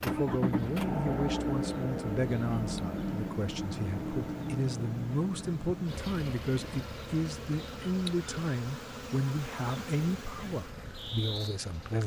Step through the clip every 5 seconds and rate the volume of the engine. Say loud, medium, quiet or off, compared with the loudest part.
loud, medium, quiet.